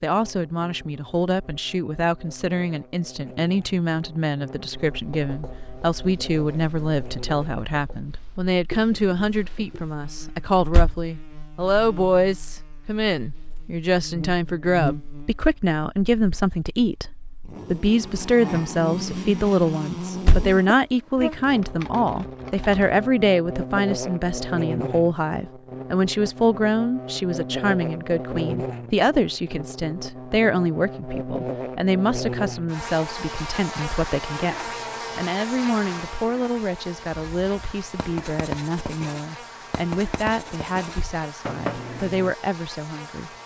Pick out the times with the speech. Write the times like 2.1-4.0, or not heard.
0.0-43.4.